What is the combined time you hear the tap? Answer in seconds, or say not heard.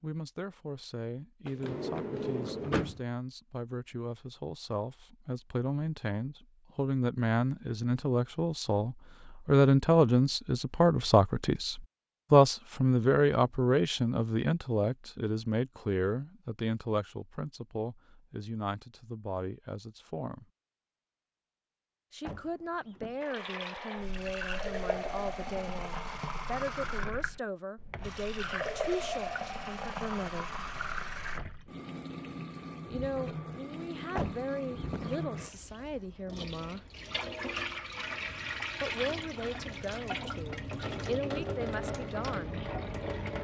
20 s.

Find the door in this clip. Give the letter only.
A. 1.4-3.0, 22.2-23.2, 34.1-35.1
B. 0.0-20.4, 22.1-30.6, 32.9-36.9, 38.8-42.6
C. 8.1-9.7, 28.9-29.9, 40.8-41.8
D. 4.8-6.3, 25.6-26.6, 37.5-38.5
A.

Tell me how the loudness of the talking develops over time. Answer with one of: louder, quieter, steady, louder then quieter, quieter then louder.
louder then quieter.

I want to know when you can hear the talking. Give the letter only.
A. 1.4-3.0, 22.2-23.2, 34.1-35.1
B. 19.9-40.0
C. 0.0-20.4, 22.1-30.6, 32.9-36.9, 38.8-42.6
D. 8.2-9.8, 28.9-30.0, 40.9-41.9
C.